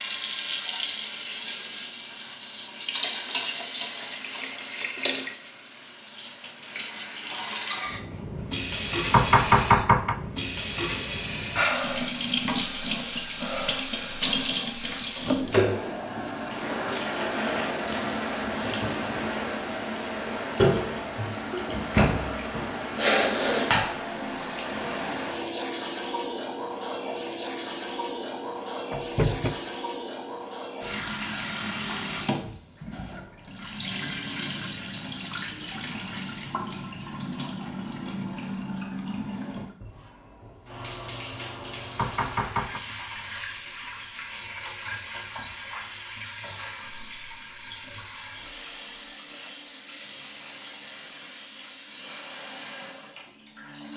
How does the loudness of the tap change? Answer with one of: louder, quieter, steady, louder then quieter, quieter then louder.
quieter.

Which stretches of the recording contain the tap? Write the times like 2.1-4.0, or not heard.
0.0-53.9.